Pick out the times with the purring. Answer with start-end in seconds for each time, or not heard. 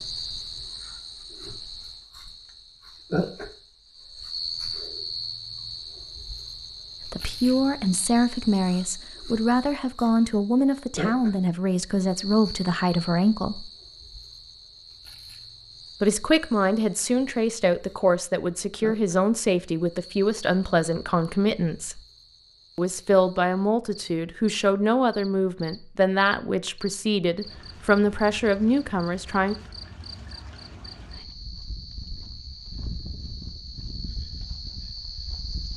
not heard.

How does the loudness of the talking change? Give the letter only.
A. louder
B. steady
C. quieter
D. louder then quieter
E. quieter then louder
B.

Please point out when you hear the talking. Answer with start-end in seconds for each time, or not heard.
7.0-13.7, 16.0-22.0, 22.8-29.6.